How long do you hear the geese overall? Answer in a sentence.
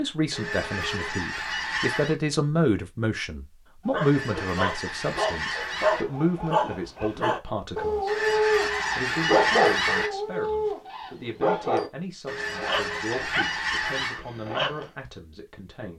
The geese can be heard for 8 seconds in total.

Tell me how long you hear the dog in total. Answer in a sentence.
You can hear the dog for 11 seconds altogether.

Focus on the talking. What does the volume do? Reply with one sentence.
The loudness of the talking goes down.